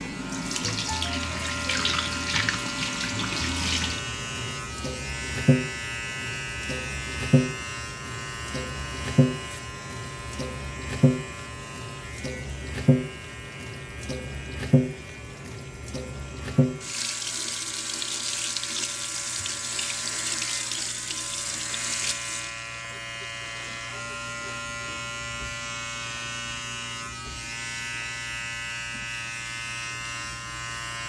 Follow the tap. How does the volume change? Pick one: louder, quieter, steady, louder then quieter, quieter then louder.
quieter.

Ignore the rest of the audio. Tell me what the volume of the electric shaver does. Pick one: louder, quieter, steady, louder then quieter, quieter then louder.
quieter then louder.